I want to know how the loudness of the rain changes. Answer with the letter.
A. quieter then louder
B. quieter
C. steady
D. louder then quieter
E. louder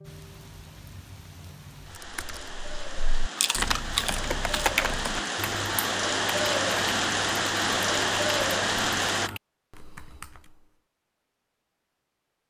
E.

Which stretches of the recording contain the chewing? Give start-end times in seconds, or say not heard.
3.4-5.3.